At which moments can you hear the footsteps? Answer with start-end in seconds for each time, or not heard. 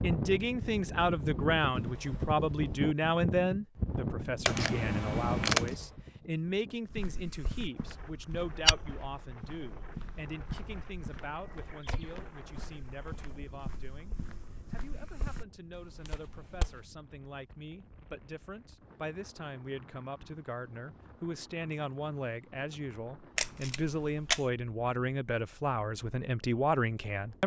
6.8-16.9.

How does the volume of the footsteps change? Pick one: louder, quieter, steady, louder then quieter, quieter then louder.
quieter.